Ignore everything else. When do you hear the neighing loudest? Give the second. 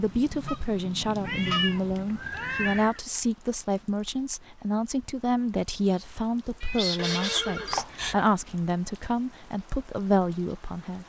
8 s.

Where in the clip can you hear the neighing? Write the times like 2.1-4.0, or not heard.
2.0-3.0, 7.0-8.2.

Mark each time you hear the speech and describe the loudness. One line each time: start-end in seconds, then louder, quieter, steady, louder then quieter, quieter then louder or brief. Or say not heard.
0.0-11.0 steady.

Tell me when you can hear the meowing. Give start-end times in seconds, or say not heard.
1.2-2.9, 6.6-7.8.